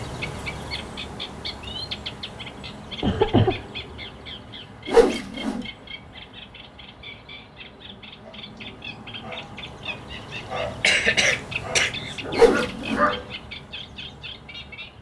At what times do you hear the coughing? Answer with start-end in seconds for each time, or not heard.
3.0-3.6, 10.8-12.2.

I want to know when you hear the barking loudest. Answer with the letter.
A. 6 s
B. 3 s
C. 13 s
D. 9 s
C.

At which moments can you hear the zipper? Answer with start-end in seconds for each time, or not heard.
not heard.